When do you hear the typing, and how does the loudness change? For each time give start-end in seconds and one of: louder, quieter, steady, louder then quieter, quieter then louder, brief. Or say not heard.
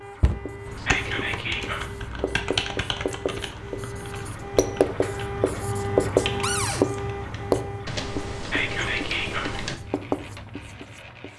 0.7-9.8 quieter then louder.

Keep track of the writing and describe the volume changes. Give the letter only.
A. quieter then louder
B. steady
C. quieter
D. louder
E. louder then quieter
E.